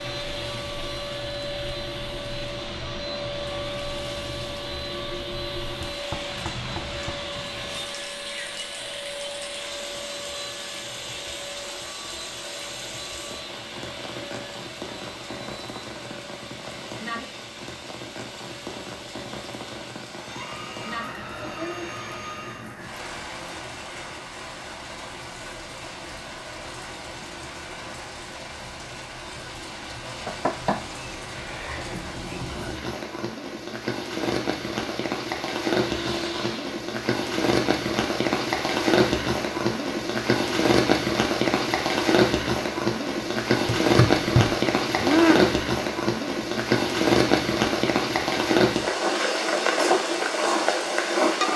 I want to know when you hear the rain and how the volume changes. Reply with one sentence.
The rain can be heard from 0.0 to 51.5 s, getting louder.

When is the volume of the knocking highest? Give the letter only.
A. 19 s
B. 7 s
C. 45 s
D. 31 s
C.